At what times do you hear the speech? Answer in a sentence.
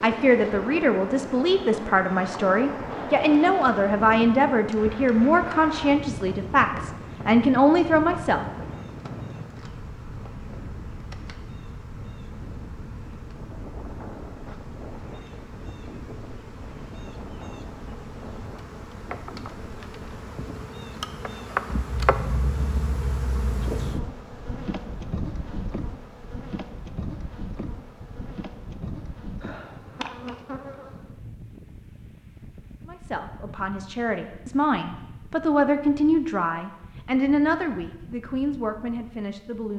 The speech can be heard from 0.0 to 8.4 s and from 32.9 to 39.7 s.